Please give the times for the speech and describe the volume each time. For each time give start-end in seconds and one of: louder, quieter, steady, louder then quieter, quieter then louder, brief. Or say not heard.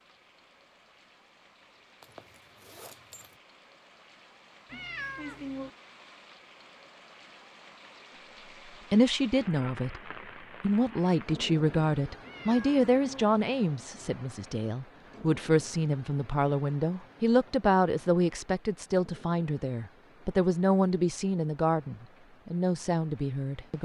8.9-23.7 steady.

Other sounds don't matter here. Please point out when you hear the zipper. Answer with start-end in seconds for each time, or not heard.
2.0-3.4.